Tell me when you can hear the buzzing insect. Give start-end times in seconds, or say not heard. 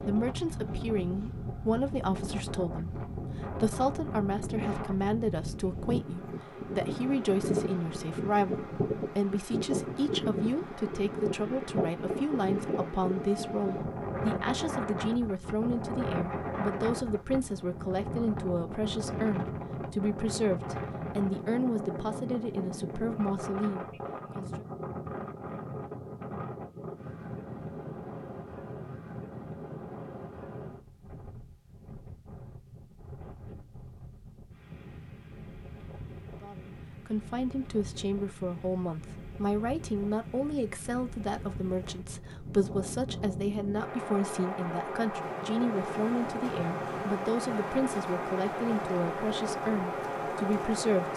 not heard.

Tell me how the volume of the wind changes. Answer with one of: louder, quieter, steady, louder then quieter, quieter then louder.
quieter then louder.